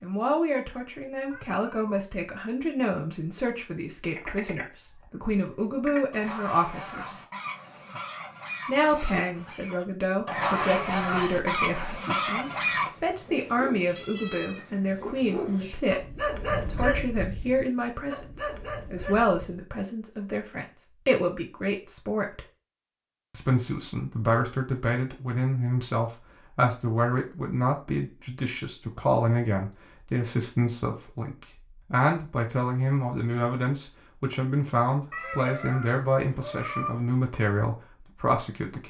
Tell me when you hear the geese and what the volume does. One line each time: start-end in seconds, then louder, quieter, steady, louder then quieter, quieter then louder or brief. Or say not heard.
4.2-12.9 louder.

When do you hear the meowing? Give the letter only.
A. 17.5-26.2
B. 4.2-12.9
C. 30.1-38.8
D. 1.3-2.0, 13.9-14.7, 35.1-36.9
D.